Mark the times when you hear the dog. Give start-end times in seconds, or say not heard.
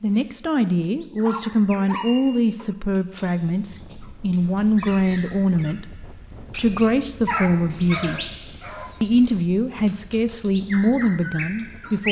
1.2-2.7, 7.2-8.9.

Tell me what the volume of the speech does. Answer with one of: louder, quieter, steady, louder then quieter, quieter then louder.
steady.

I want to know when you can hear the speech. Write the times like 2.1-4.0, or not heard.
0.0-8.2, 9.0-12.0.